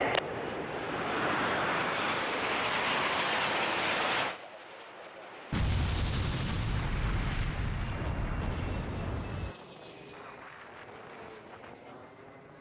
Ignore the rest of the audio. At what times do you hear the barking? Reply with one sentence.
You can't hear the barking here.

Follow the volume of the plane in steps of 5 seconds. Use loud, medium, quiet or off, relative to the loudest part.
loud, quiet, quiet.